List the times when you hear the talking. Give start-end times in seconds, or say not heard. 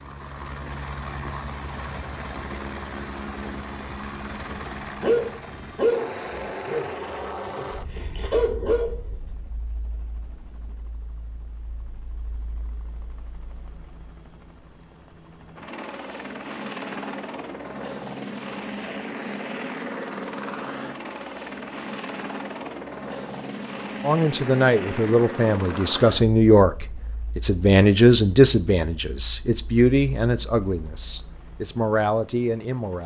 24.0-33.0.